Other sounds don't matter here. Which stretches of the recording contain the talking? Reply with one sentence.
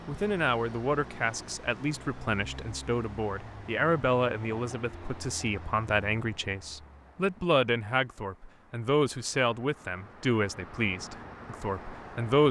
The talking can be heard from 0.1 to 12.4 s.